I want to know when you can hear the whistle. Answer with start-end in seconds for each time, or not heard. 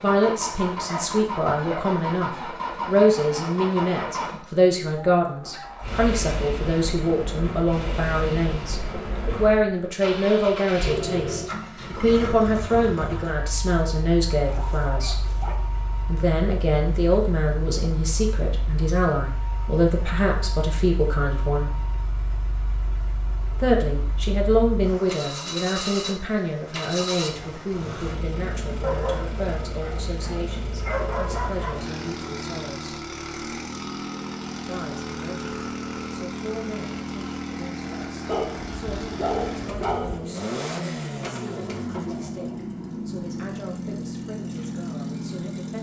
not heard.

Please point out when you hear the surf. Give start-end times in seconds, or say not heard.
not heard.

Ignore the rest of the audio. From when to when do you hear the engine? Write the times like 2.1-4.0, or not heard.
0.0-45.7.